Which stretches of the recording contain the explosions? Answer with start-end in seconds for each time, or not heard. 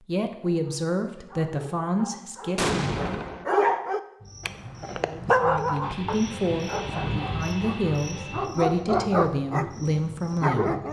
2.5-3.5.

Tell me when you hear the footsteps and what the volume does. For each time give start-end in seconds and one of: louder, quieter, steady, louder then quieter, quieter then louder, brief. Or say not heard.
not heard.